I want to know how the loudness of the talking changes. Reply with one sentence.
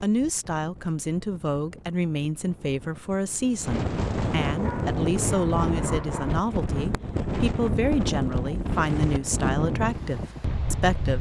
The volume of the talking stays about the same.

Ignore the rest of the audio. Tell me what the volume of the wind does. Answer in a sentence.
The volume of the wind goes up.